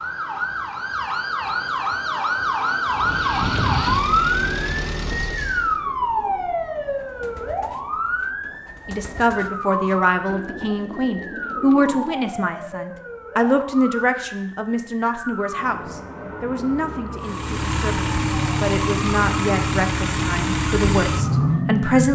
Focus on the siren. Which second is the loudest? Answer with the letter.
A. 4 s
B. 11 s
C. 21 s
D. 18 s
A.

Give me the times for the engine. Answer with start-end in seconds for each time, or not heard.
2.9-5.8, 17.2-22.1.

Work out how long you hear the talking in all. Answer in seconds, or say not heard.
13 s.